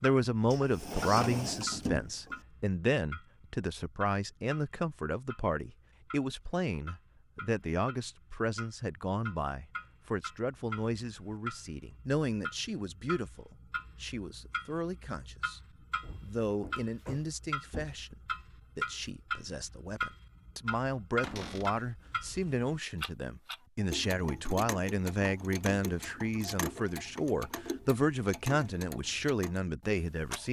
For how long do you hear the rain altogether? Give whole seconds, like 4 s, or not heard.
not heard.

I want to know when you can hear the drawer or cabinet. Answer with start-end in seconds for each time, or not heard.
0.5-2.4, 16.0-18.1, 21.2-21.8.